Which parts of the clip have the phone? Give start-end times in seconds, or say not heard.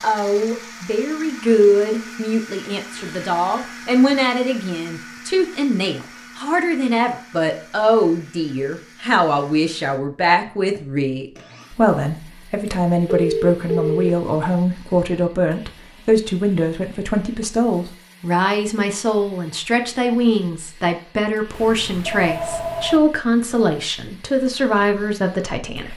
2.9-4.2, 12.7-14.1, 21.5-23.0.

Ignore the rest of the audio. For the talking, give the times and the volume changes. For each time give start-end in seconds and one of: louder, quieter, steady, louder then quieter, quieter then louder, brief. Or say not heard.
0.0-25.9 steady.